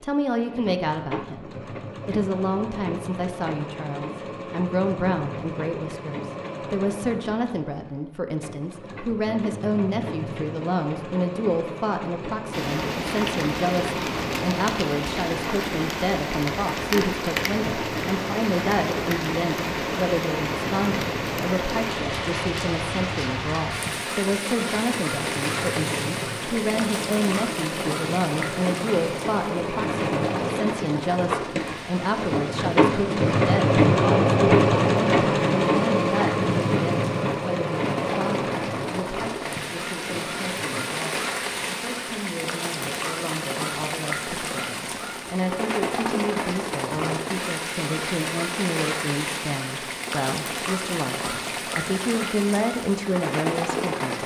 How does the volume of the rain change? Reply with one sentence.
The loudness of the rain goes down, then up.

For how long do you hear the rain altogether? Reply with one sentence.
The rain can be heard for 42 seconds in total.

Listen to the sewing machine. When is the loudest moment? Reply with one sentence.
The volume of the sewing machine peaks at 34 seconds.